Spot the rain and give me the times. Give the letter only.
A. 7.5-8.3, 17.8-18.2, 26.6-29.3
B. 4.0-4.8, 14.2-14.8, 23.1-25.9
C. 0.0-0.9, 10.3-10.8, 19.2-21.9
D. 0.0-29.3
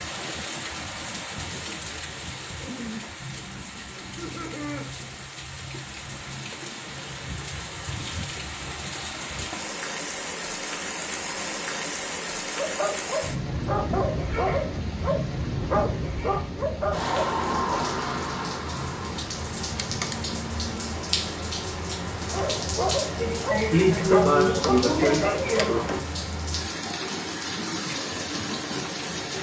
D.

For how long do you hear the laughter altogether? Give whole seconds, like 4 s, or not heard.
4 s.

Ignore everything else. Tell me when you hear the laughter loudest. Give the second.
24 s.